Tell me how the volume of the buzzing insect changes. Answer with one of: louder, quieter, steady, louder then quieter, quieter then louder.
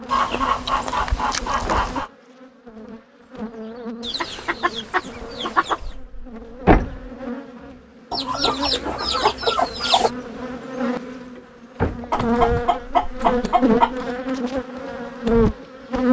louder.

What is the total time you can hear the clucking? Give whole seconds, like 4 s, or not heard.
8 s.